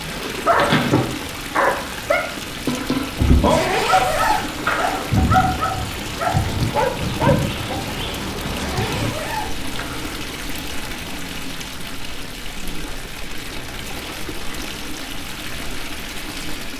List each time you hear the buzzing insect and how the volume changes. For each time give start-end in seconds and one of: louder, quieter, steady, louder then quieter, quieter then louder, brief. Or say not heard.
0.0-16.7 quieter.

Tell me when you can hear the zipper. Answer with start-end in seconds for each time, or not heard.
3.5-5.2, 8.5-10.2.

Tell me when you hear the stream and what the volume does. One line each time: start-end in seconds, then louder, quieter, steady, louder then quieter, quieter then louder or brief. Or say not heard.
0.0-16.7 steady.